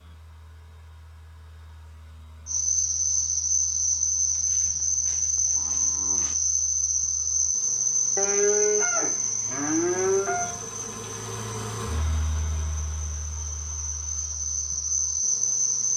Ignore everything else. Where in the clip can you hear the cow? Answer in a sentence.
You can hear the cow from 4.3 to 6.3 s and from 8.2 to 10.6 s.